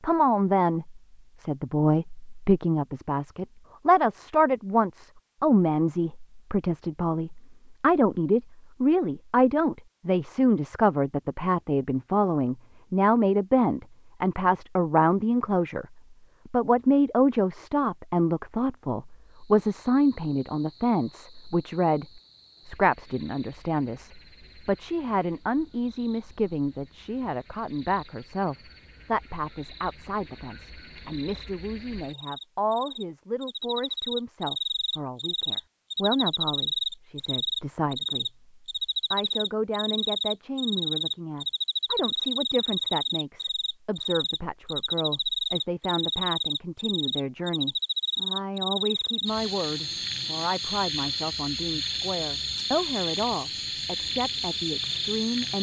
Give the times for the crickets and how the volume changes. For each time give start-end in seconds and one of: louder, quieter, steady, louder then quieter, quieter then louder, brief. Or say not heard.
19.2-55.5 louder.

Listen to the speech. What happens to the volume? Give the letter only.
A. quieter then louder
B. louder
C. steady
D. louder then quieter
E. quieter
E.